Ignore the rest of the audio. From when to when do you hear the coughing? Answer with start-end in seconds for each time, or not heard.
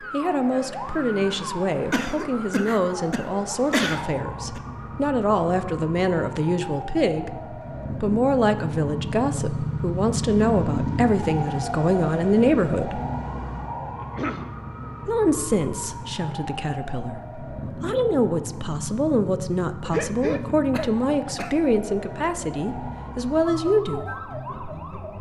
1.9-4.6, 14.0-14.6, 19.9-21.6.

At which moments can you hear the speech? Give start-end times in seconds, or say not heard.
0.0-13.0, 15.1-24.1.